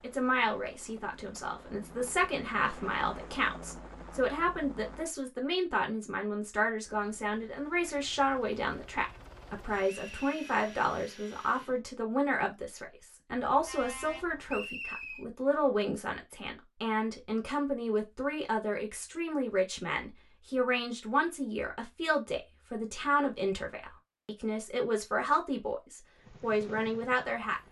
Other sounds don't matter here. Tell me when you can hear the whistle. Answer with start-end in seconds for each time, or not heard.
9.8-10.3, 14.4-15.2.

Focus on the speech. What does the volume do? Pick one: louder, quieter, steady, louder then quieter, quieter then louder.
steady.